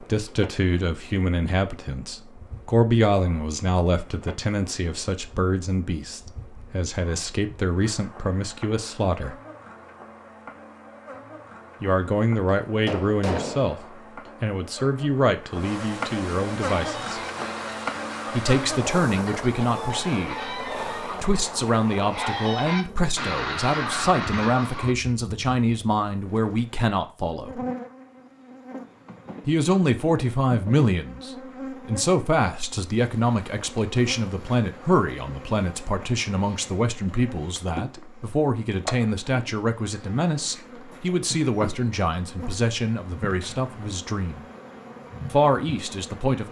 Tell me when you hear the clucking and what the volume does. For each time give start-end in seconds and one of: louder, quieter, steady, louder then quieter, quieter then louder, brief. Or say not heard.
16.8-24.9 louder.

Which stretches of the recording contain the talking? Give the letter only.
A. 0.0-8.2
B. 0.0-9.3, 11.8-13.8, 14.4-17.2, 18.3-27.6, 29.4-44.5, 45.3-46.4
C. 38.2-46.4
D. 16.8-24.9
B.